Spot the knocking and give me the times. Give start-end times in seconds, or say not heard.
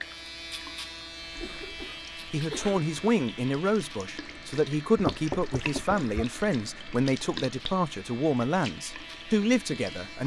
5.0-6.0.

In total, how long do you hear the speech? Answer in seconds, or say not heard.
8 s.